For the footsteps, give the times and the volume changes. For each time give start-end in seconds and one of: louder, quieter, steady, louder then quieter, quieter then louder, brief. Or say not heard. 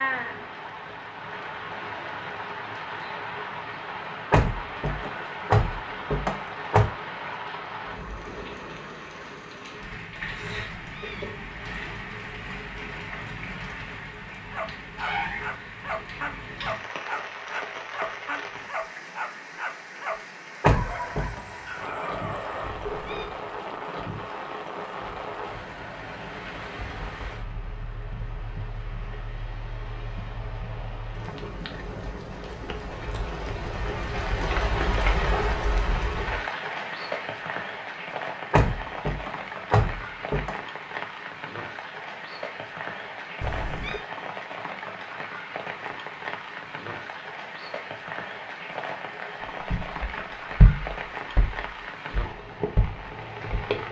49.7-53.7 quieter then louder.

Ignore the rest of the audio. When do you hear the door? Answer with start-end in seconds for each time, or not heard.
4.3-6.8, 20.6-21.4, 38.5-40.5.